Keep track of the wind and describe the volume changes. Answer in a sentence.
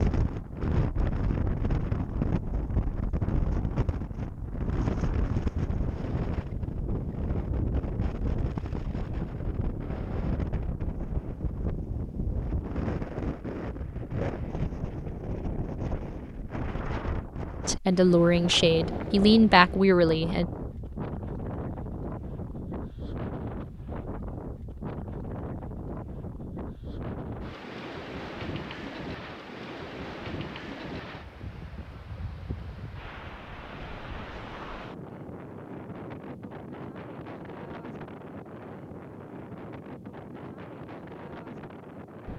The loudness of the wind goes down.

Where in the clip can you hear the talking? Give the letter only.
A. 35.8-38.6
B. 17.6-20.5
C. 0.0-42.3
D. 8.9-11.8
B.